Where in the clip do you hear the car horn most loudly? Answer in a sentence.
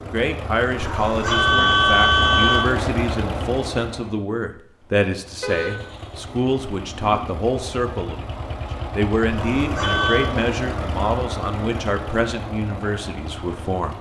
The loudest moment of the car horn is at 2 seconds.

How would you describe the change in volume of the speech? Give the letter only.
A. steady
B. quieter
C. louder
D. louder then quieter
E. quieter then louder
A.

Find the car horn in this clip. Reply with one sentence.
The car horn can be heard from 0.8 to 2.6 s, from 5.4 to 6.2 s and from 9.3 to 10.3 s.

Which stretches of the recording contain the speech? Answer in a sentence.
You can hear the speech from 0.0 to 13.9 s.